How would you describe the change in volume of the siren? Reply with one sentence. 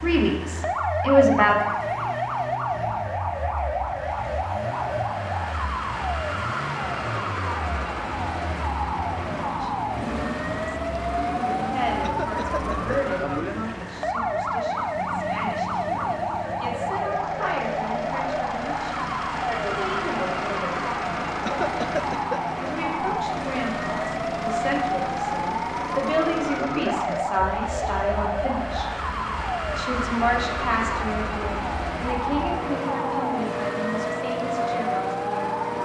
The volume of the siren stays about the same.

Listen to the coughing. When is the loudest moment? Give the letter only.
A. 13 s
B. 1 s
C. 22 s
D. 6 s
C.